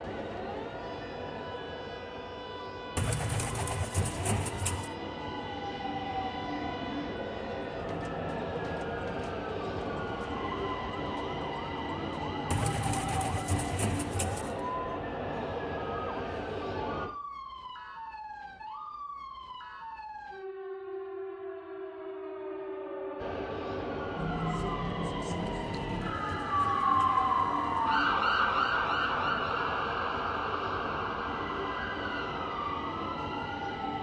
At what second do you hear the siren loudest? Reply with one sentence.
The volume of the siren peaks at 27 seconds.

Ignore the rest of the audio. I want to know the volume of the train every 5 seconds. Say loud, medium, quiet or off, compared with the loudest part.
medium, loud, loud, loud, loud, loud, loud.